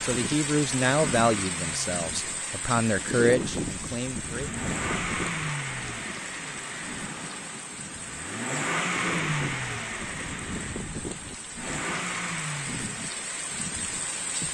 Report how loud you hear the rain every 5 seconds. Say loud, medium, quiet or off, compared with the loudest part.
loud, medium, loud.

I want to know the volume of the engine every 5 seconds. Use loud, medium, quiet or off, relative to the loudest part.
medium, loud, medium.